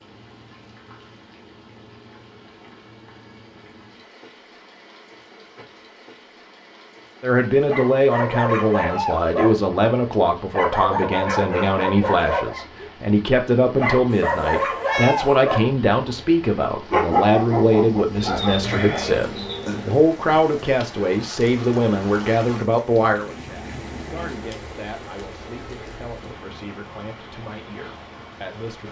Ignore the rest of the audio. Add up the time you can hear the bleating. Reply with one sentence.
The bleating can be heard for 2 seconds in total.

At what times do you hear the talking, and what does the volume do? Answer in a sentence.
You can hear the talking from 7.2 to 28.8 s, getting quieter.